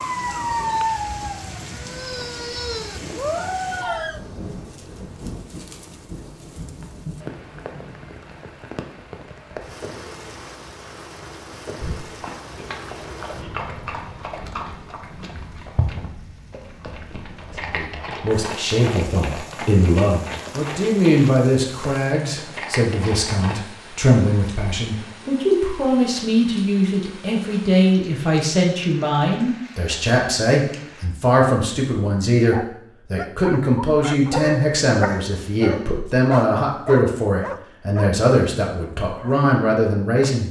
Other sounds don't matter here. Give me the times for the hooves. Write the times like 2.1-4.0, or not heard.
11.8-23.6.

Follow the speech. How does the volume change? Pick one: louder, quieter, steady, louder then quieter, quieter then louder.
steady.